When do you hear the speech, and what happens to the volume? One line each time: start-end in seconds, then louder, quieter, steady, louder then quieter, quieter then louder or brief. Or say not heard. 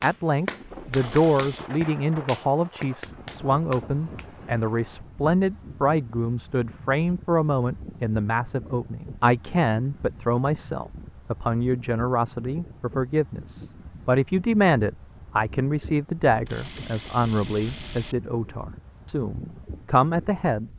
0.0-20.7 steady.